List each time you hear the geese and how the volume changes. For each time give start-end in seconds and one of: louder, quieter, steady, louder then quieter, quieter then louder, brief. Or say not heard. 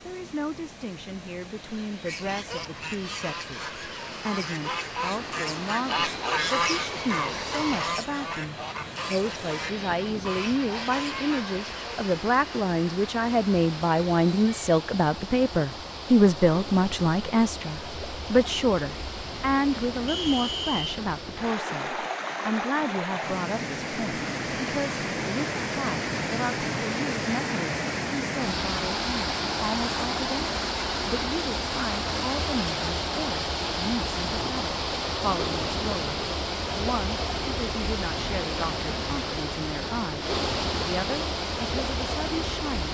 2.0-12.1 louder then quieter.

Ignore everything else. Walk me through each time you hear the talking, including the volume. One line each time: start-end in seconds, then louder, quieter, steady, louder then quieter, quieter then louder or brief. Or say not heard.
0.1-42.8 louder then quieter.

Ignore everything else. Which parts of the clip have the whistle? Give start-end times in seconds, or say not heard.
20.1-21.0.